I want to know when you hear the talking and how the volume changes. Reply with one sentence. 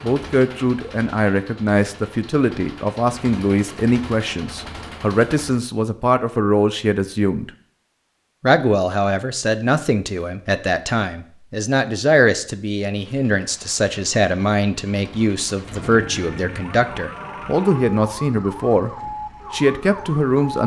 You can hear the talking from 0.0 to 7.5 s, at a steady volume; and from 8.4 to 20.6 s, at a steady volume.